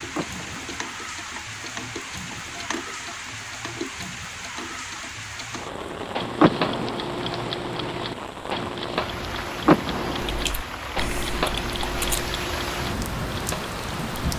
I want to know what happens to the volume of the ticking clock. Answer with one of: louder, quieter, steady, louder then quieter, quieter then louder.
louder.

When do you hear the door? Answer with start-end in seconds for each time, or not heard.
0.1-0.9, 6.4-7.2, 9.7-10.6.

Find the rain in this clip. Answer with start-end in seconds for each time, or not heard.
0.0-14.3.